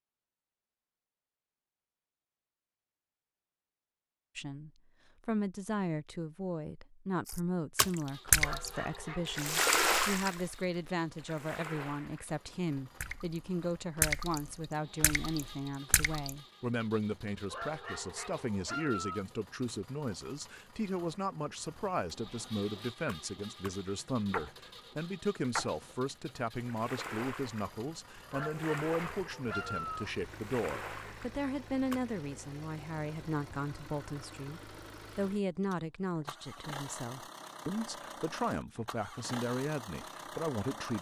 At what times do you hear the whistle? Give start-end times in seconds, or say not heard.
not heard.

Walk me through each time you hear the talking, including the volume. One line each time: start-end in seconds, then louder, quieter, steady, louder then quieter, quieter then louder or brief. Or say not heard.
4.3-40.9 steady.